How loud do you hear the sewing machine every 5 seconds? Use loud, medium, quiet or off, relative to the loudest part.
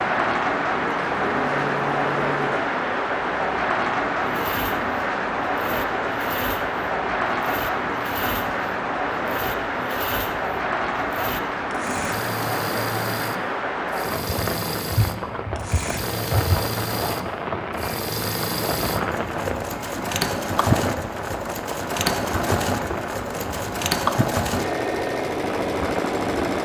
medium, medium, medium, medium, loud, loud.